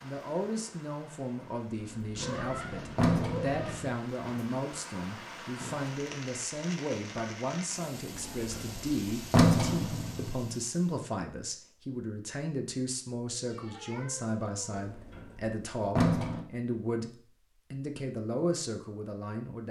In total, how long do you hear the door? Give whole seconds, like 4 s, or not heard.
6 s.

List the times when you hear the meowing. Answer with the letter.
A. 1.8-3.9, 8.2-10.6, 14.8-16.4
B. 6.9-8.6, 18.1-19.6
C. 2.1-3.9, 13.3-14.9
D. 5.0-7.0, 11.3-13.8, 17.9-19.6
C.